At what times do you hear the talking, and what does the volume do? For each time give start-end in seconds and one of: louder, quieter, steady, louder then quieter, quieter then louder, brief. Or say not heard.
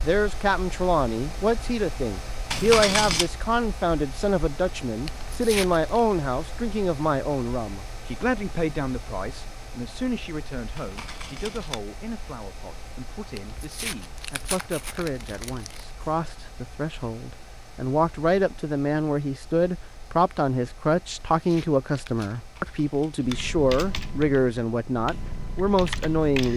0.0-26.5 quieter then louder.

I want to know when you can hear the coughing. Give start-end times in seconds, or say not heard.
not heard.